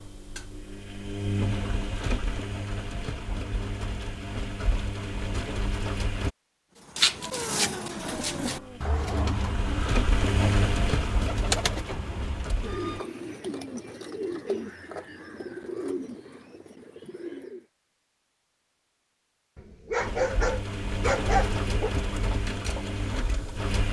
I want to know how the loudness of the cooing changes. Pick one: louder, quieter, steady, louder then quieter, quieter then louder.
quieter.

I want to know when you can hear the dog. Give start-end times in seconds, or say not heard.
7.3-9.3, 19.6-21.9.